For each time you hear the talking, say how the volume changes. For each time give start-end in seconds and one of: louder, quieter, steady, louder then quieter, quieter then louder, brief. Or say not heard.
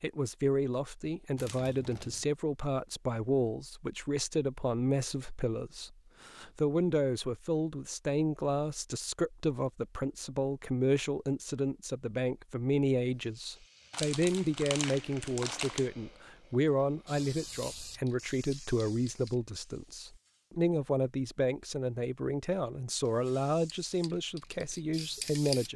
0.0-25.7 steady.